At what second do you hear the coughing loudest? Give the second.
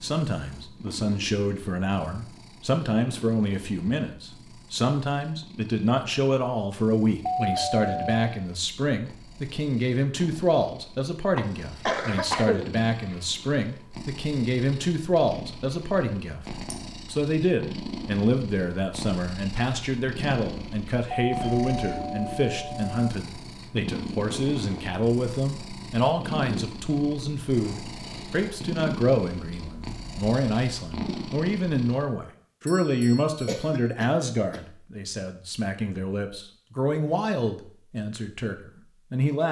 12 s.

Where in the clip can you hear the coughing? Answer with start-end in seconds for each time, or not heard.
11.3-13.2, 33.5-34.6.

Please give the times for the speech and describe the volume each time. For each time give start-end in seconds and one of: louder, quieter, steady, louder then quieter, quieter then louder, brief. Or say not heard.
0.0-39.4 steady.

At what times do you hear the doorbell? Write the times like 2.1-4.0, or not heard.
7.2-8.2, 21.2-23.1, 32.6-33.9.